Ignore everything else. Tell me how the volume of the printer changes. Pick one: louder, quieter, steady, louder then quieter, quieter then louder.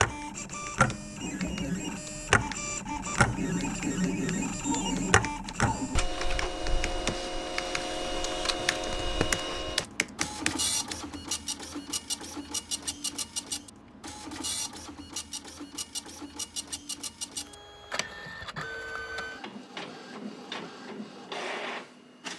quieter.